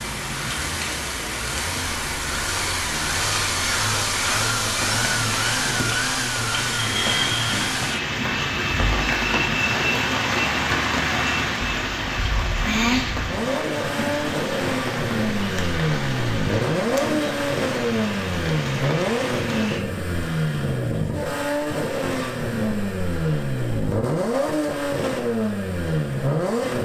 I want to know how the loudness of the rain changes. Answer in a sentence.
The loudness of the rain goes up, then down.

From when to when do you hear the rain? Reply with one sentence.
The rain can be heard from 0.0 to 19.8 s.